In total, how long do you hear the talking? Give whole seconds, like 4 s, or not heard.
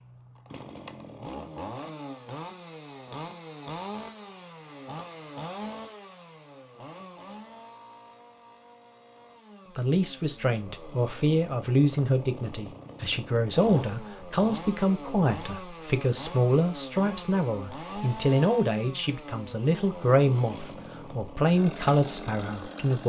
13 s.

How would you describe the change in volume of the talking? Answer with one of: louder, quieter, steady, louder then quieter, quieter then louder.
steady.